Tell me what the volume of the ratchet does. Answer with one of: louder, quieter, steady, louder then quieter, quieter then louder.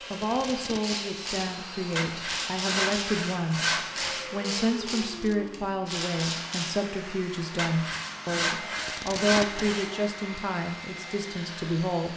steady.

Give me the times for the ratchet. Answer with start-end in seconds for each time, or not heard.
0.7-6.9.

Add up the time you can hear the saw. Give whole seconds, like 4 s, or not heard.
5 s.